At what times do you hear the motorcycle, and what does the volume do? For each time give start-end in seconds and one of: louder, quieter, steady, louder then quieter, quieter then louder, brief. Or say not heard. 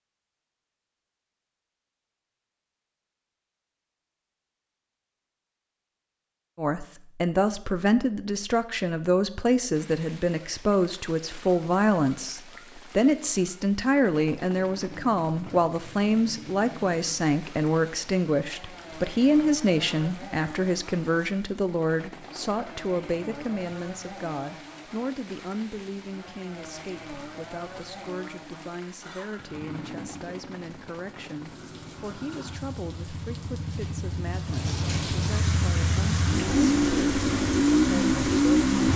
14.4-38.9 louder.